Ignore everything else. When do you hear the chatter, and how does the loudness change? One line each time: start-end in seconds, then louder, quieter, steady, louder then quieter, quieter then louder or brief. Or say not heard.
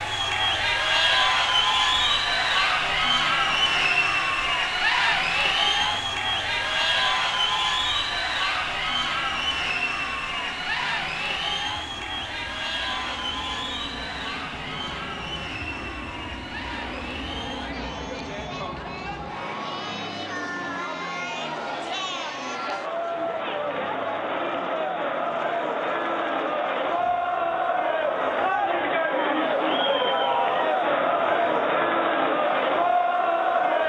0.0-33.8 quieter then louder.